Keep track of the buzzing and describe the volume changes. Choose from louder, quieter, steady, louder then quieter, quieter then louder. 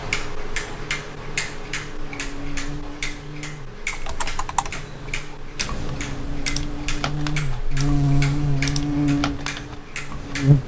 louder.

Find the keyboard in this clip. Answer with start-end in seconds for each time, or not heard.
3.9-10.6.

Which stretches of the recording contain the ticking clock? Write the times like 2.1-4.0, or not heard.
0.0-10.6.